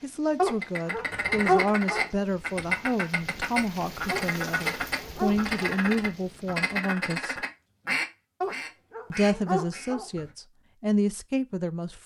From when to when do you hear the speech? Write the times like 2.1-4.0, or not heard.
0.0-7.5, 9.1-12.0.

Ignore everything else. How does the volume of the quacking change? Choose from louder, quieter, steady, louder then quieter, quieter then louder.
quieter.